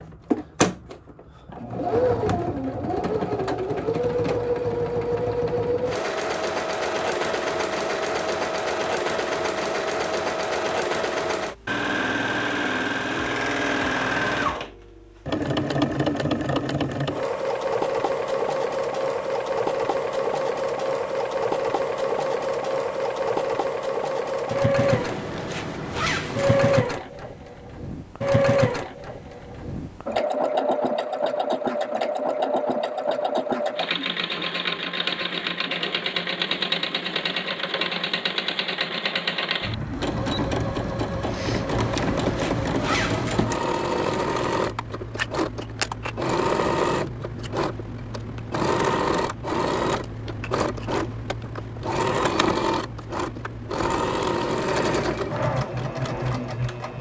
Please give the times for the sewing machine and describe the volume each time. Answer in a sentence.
You can hear the sewing machine from 0.0 to 56.9 s, at a steady volume.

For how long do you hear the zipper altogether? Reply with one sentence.
You can hear the zipper for 4 seconds altogether.